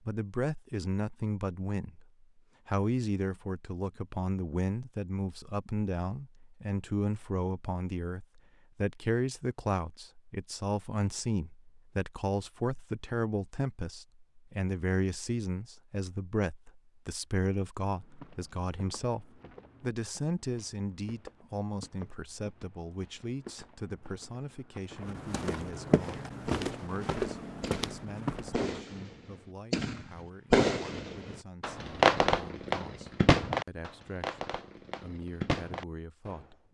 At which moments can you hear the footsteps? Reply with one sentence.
You can hear the footsteps from 18.0 to 28.8 s.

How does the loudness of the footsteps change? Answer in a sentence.
The volume of the footsteps goes up.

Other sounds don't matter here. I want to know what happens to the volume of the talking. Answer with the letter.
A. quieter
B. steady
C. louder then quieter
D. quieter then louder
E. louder
A.